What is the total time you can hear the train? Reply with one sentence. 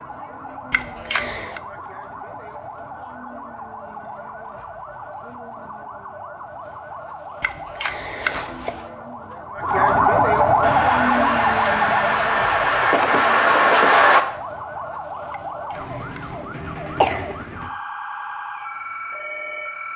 You can hear the train for 4 seconds altogether.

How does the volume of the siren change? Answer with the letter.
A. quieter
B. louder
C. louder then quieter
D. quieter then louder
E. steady
C.